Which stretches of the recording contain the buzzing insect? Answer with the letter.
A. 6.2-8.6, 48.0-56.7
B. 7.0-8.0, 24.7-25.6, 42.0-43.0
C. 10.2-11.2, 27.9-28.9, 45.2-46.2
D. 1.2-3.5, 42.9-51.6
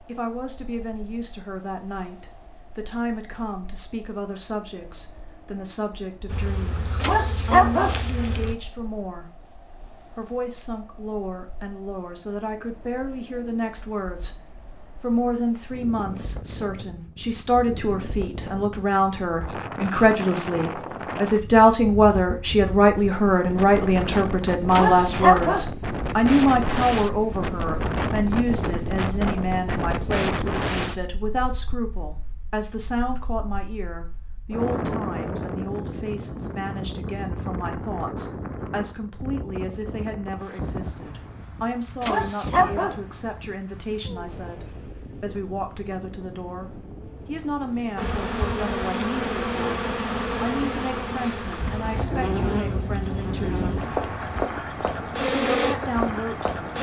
A.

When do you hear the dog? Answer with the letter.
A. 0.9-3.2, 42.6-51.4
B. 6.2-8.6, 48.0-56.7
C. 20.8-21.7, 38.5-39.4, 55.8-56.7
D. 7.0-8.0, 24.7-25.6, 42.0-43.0
D.